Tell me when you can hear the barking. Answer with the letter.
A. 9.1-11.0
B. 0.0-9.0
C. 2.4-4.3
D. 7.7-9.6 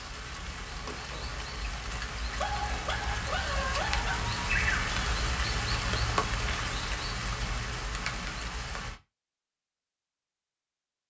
C.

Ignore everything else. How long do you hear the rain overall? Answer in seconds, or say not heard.
9 s.